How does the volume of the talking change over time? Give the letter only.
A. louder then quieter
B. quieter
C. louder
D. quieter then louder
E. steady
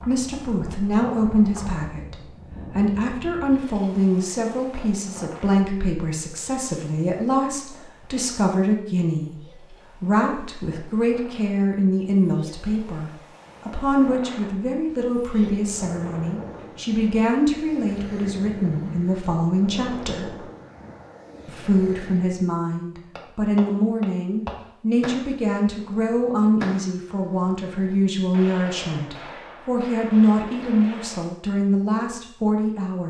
E.